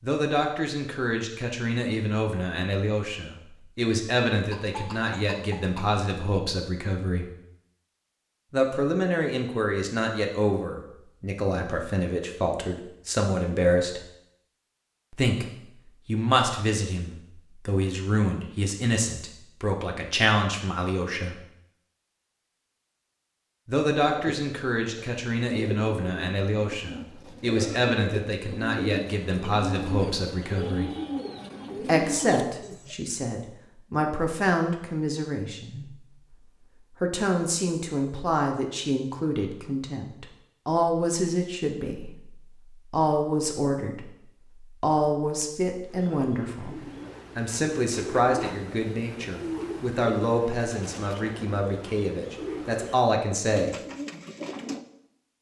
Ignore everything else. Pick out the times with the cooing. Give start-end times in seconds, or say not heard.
24.0-33.0, 45.9-54.9.